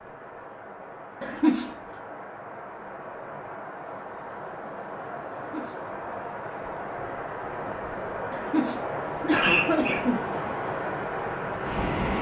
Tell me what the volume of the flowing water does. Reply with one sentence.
The volume of the flowing water goes up.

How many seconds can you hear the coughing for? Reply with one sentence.
The coughing can be heard for 3 seconds in total.